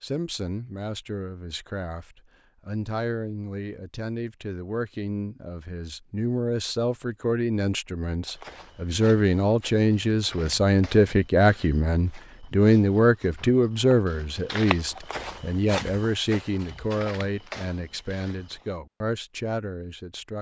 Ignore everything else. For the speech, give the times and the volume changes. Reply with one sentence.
The speech can be heard from 0.0 to 20.3 s, getting louder then quieter.